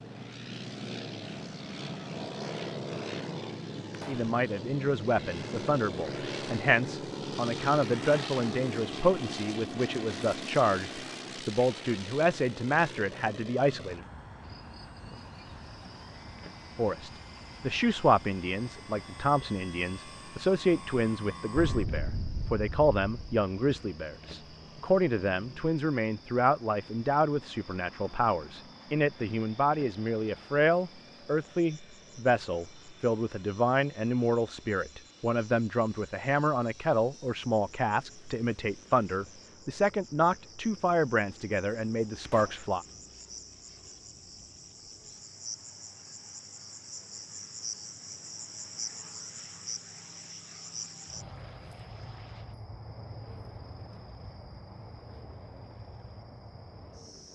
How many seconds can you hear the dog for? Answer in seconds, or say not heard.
not heard.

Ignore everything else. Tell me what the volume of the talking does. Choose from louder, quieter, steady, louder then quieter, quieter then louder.
steady.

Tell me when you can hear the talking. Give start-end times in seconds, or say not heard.
4.0-14.1, 16.8-42.9.